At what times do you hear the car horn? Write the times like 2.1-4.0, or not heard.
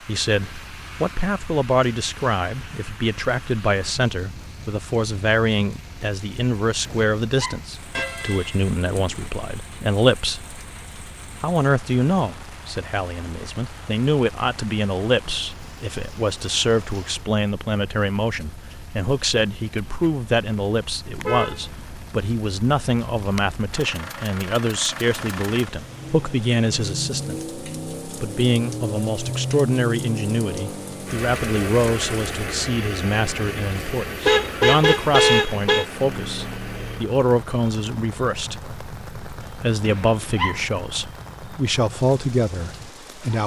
8.0-9.3, 21.2-21.9, 34.2-35.9.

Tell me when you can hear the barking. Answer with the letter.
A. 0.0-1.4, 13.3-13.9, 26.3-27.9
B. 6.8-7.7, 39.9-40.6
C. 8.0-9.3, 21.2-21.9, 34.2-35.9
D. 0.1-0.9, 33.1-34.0
B.